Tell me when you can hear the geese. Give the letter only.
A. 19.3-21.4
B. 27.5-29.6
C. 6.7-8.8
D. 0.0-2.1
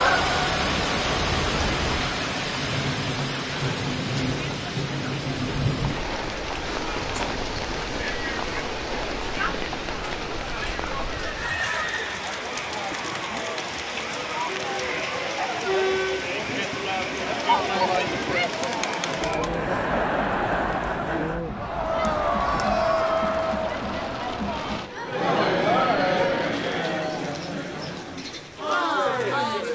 D.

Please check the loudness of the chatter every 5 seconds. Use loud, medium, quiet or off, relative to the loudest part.
medium, medium, medium, loud, loud, loud.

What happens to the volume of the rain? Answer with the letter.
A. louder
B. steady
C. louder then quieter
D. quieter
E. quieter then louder
D.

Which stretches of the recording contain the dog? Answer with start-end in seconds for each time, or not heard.
not heard.